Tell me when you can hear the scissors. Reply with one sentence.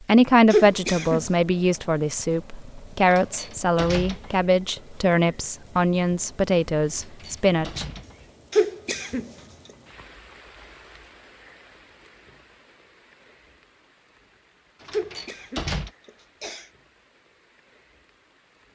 The scissors can't be heard in this clip.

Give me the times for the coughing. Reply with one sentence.
The coughing can be heard from 0.5 to 1.2 s, from 8.5 to 9.2 s and from 14.9 to 16.7 s.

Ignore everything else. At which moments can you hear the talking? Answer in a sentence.
You can hear the talking from 0.1 to 7.8 s.